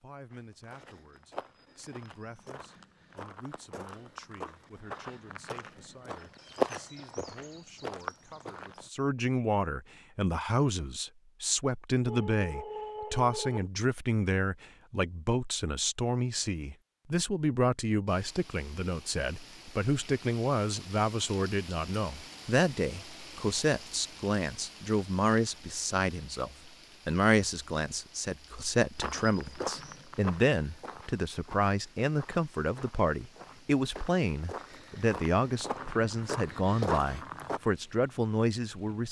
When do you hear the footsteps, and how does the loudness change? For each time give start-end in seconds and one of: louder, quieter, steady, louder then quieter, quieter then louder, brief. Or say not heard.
0.3-8.9 louder then quieter
28.9-37.6 quieter then louder.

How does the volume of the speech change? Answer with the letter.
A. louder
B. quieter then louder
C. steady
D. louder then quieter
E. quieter
A.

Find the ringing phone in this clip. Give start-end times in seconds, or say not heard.
12.1-13.7.